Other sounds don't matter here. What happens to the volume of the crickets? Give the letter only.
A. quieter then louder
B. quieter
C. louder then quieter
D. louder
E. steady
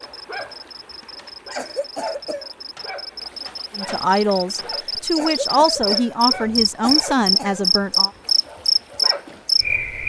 D.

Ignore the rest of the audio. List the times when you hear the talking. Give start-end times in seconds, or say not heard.
3.8-8.1.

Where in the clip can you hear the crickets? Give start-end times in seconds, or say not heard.
0.1-10.0.